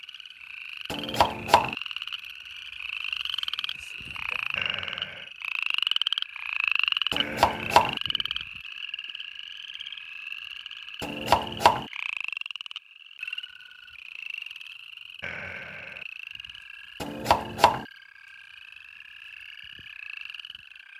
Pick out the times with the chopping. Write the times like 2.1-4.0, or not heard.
0.9-1.8, 7.1-8.0, 11.0-11.8, 17.0-17.9.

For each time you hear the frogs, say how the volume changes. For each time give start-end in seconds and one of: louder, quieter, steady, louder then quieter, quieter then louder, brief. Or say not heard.
0.0-20.9 louder then quieter.